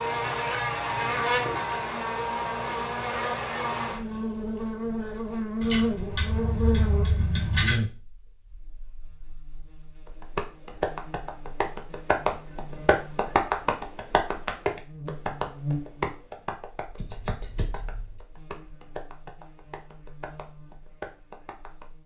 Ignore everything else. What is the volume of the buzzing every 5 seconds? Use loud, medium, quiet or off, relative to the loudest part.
loud, loud, quiet, medium, quiet.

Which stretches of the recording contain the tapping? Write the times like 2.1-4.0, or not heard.
10.1-21.9.